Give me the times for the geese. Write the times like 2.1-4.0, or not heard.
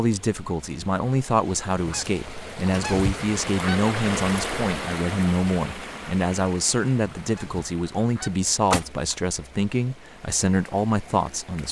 1.8-3.8, 7.3-9.2.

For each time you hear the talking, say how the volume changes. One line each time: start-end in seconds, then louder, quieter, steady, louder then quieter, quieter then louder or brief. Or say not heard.
0.0-11.6 steady.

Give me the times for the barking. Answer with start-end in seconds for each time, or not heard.
not heard.